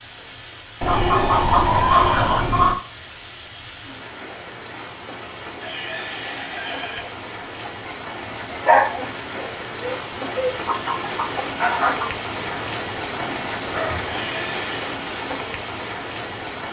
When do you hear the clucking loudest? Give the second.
2 s.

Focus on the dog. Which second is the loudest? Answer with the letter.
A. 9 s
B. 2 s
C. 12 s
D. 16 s
A.